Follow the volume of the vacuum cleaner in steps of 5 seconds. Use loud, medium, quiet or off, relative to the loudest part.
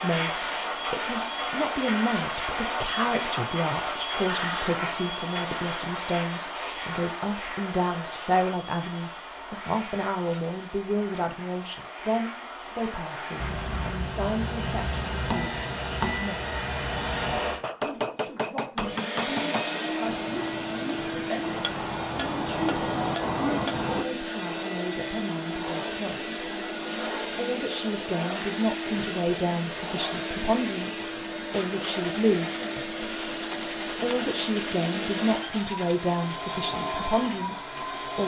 loud, medium, medium, loud, loud, loud, loud, loud.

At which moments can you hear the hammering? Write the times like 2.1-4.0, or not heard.
13.3-24.1.